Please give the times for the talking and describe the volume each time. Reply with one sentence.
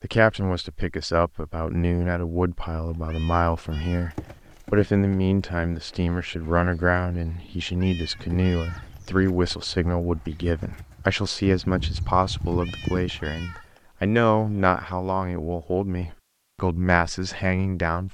The talking can be heard from 0.0 to 18.0 s, at a steady volume.